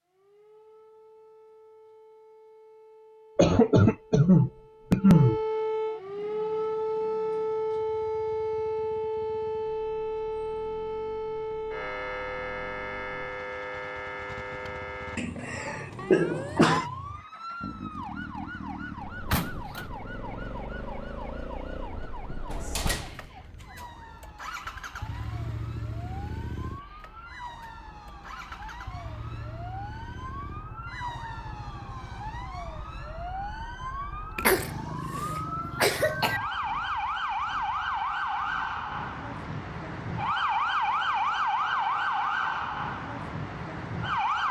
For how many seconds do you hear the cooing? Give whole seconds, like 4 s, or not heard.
not heard.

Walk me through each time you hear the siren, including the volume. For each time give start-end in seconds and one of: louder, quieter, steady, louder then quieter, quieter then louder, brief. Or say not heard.
0.1-44.4 quieter then louder.